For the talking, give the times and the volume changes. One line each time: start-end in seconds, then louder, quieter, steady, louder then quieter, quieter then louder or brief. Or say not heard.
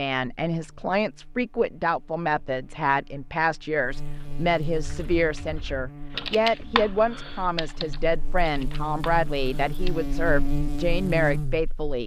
0.0-12.0 steady.